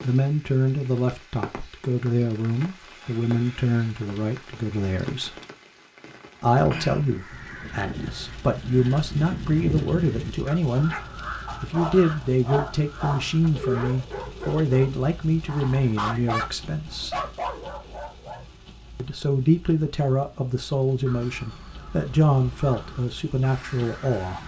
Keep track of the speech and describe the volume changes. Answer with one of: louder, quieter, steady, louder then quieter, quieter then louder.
steady.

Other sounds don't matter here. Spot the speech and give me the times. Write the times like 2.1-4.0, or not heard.
0.0-5.3, 6.4-10.9, 11.6-17.2, 18.9-24.4.